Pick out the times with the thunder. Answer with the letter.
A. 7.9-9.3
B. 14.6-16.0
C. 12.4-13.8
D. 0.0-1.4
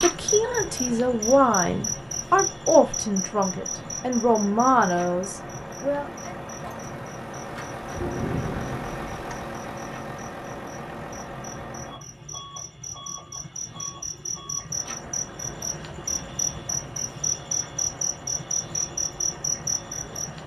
A.